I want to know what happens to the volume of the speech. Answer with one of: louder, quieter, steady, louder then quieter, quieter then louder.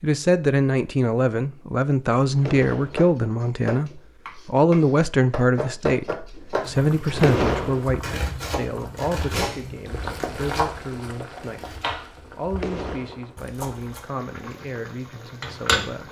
quieter.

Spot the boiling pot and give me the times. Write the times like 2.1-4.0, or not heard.
6.6-16.0.